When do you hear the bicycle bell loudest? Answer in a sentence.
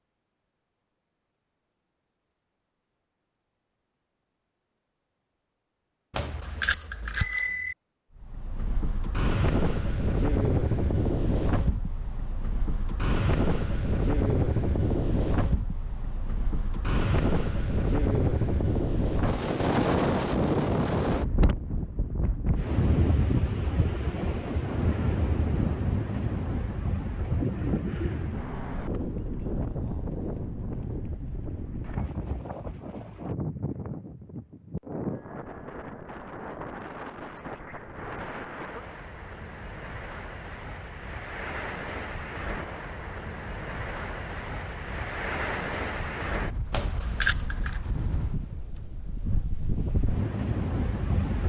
The volume of the bicycle bell peaks at 7 seconds.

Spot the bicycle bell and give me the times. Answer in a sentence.
The bicycle bell can be heard from 6.1 to 7.8 s and from 46.7 to 47.8 s.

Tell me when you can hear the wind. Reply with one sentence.
You can hear the wind from 8.2 to 51.4 s.